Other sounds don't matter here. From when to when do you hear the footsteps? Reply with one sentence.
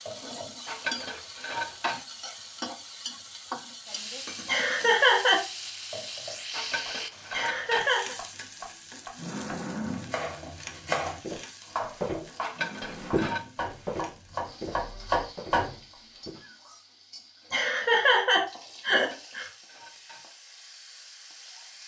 You can hear the footsteps from 11.2 to 16.4 s.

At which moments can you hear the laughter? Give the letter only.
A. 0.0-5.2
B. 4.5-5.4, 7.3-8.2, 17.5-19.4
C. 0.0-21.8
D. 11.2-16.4
B.